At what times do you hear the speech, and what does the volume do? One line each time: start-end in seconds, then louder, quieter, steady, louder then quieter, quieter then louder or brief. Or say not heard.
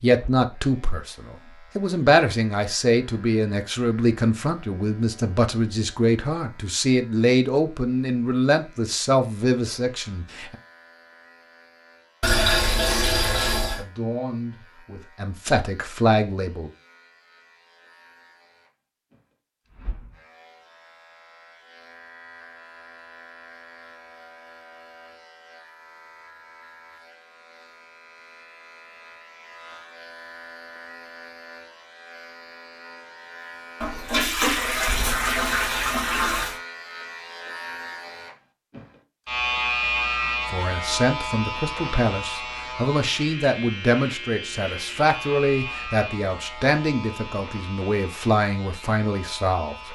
0.0-10.6 steady
13.8-16.7 brief
40.5-49.9 steady.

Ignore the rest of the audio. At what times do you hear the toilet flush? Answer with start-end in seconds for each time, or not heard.
12.2-13.8, 33.8-36.6.